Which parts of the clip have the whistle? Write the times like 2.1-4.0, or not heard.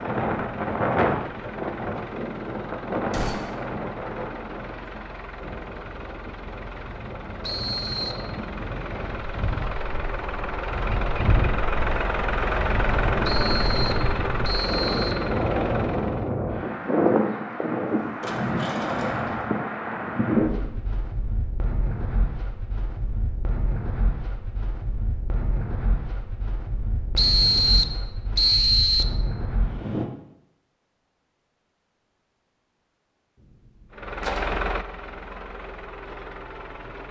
7.4-8.2, 13.2-15.2, 27.1-29.1.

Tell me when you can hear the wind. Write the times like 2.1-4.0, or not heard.
0.0-30.1.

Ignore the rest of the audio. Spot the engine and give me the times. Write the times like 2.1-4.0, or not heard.
0.0-16.4, 33.9-37.0.